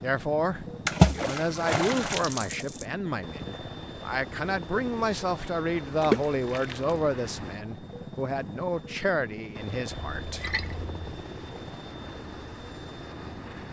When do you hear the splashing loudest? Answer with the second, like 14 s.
1 s.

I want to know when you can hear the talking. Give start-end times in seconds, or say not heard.
0.0-10.4.